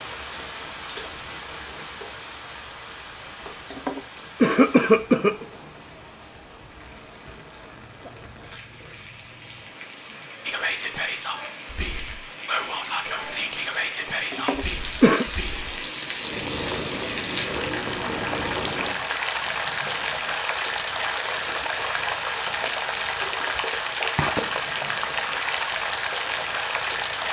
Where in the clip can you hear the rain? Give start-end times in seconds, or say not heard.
0.0-27.2.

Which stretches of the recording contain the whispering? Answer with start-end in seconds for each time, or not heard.
10.4-15.8.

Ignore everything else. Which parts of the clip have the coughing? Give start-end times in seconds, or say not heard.
3.7-5.5, 14.3-15.2.